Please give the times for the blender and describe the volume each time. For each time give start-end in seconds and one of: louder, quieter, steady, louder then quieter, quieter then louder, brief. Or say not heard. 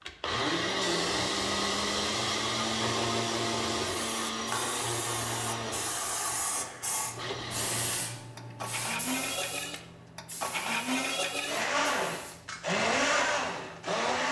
0.1-14.2 quieter then louder.